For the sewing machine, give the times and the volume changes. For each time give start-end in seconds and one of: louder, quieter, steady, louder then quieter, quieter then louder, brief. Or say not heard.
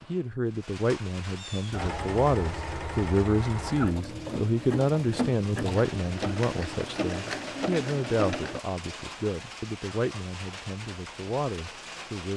1.7-8.6 steady.